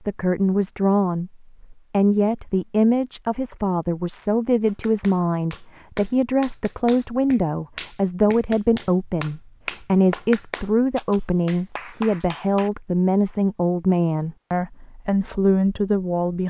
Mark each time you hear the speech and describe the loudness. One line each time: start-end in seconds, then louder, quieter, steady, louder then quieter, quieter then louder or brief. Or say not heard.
0.1-16.4 steady.